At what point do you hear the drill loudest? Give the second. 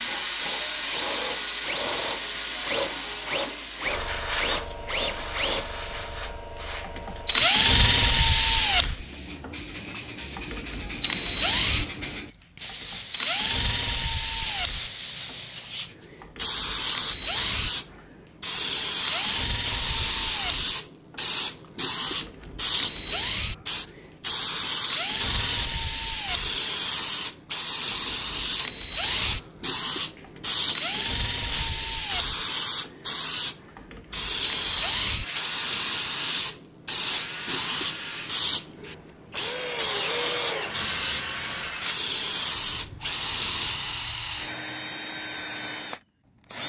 8 s.